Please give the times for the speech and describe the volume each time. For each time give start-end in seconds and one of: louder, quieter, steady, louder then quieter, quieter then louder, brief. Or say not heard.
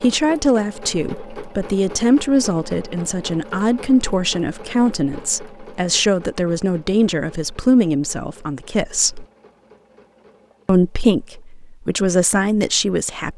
0.0-9.2 steady
10.7-13.3 brief.